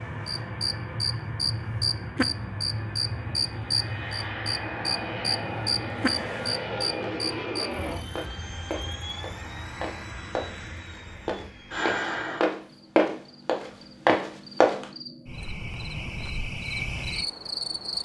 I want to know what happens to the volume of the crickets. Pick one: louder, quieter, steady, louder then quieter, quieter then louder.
quieter then louder.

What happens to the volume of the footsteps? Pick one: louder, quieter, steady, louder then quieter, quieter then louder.
louder.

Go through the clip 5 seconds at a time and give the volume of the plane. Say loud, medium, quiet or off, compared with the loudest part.
loud, loud, loud, off.